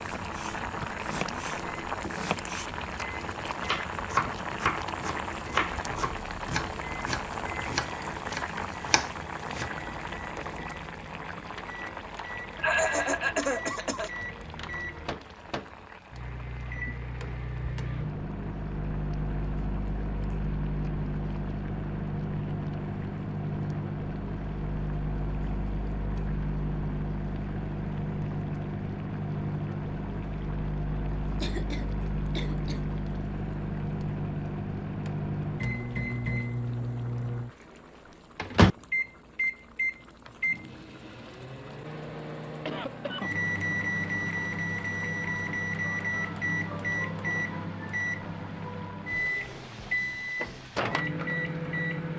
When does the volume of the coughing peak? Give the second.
13 s.